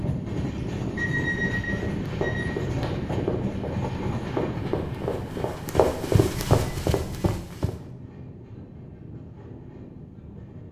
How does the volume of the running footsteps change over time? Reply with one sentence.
The loudness of the running footsteps goes up.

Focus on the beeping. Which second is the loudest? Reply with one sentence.
The volume of the beeping peaks at 1 second.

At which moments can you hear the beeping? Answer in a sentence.
The beeping can be heard from 0.6 to 2.5 s and from 6.3 to 7.3 s.